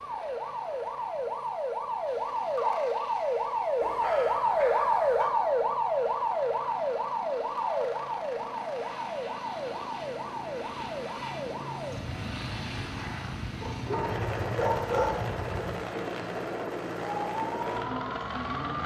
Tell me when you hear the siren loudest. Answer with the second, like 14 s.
5 s.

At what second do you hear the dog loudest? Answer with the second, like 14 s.
15 s.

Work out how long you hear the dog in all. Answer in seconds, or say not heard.
3 s.